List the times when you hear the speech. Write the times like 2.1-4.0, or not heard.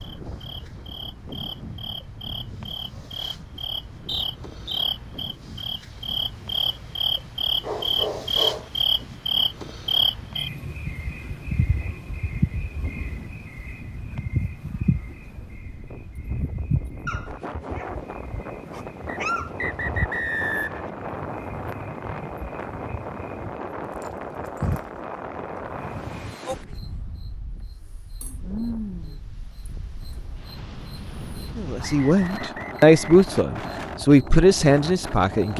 31.6-35.5.